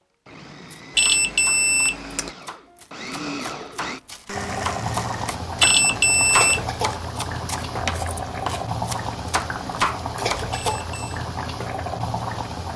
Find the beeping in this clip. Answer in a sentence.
The beeping can be heard from 0.9 to 2.3 s, from 5.6 to 6.7 s and from 10.5 to 11.2 s.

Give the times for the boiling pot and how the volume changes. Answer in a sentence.
You can hear the boiling pot from 4.3 to 12.7 s, at a steady volume.